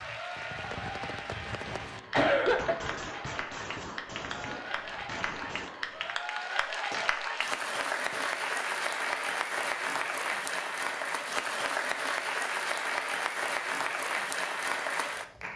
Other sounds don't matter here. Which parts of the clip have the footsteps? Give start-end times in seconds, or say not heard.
not heard.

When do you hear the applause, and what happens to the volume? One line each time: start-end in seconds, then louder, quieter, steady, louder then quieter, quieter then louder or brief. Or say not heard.
0.0-15.5 louder.